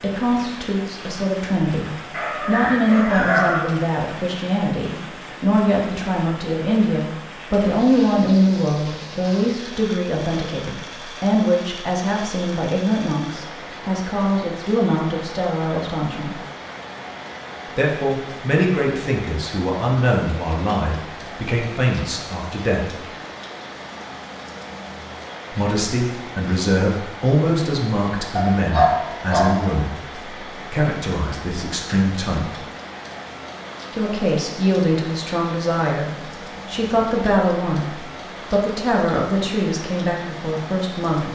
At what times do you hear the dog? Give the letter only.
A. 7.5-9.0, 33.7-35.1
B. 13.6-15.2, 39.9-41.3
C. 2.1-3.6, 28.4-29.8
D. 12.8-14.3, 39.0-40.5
C.